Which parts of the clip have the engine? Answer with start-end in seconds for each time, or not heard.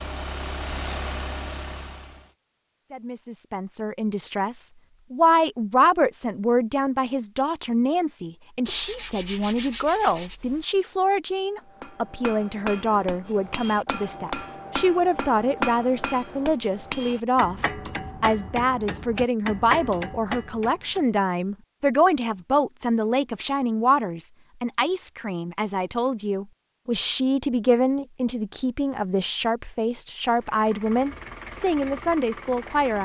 0.0-2.4, 30.3-33.0.